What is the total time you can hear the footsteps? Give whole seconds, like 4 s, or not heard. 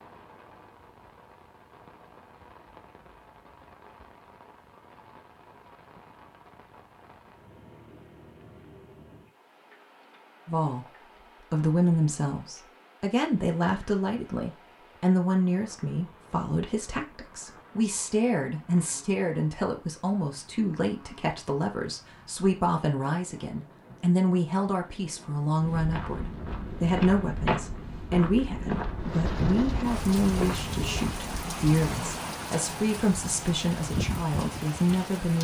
7 s.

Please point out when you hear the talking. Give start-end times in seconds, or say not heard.
10.4-35.3.